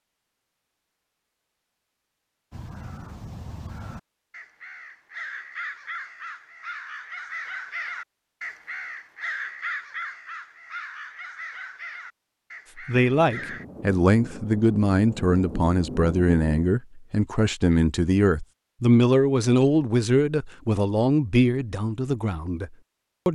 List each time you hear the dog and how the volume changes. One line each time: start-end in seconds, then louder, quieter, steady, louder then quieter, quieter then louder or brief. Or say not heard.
not heard.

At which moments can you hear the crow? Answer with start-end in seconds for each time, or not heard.
2.5-13.7.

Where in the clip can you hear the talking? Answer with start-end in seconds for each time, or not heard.
12.8-23.3.